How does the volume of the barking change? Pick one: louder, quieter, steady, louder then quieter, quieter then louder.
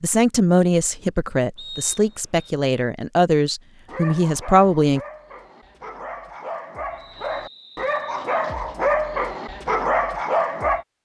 louder.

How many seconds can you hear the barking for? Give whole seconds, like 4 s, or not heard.
7 s.